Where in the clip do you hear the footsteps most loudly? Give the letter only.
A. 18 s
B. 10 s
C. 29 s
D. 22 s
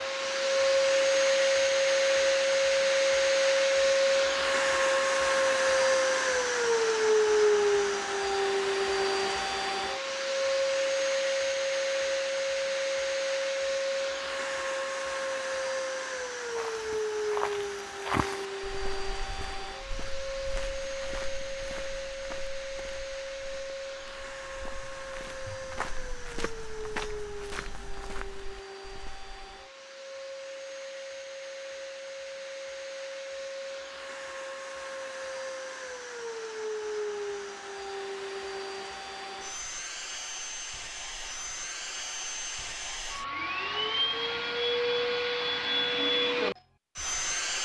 A.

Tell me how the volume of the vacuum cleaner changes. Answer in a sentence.
The loudness of the vacuum cleaner goes down, then up.